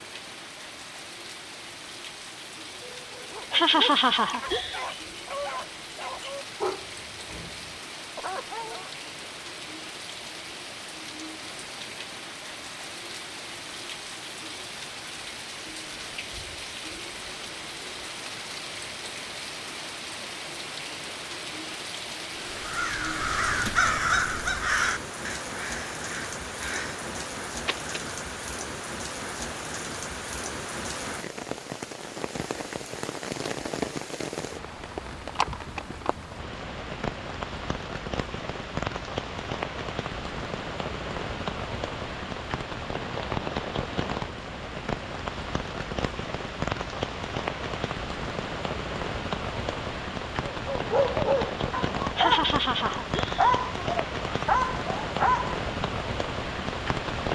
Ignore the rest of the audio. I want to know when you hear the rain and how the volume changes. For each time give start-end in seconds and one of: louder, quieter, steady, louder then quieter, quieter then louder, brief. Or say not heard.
0.0-57.3 louder.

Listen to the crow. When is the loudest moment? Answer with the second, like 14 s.
24 s.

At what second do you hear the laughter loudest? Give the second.
4 s.